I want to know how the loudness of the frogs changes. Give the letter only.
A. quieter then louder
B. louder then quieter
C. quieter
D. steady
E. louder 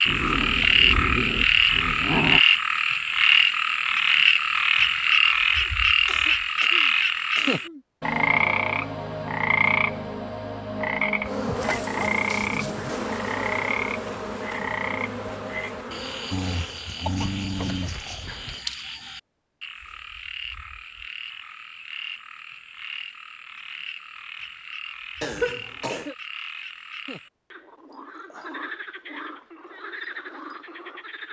C.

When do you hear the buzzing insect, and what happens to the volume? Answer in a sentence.
The buzzing insect can be heard from 11.2 to 18.6 s, getting quieter.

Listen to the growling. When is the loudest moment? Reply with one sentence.
The volume of the growling peaks at 2 seconds.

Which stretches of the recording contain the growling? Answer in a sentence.
The growling can be heard from 0.1 to 2.4 s and from 16.3 to 18.2 s.